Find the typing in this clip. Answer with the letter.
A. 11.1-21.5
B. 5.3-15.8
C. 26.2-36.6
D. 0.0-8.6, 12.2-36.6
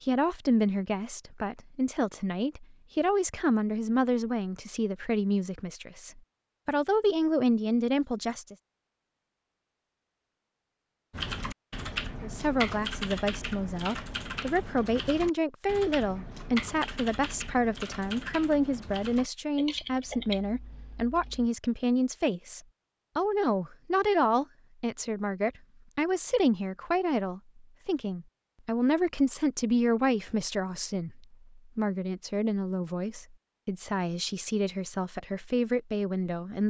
A.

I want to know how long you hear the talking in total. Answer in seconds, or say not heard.
33 s.